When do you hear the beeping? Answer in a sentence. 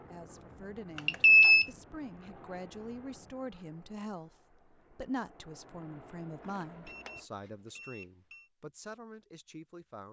The beeping can be heard from 0.9 to 1.6 s and from 6.4 to 8.4 s.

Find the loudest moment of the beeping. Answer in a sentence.
The loudest moment of the beeping is at 1 second.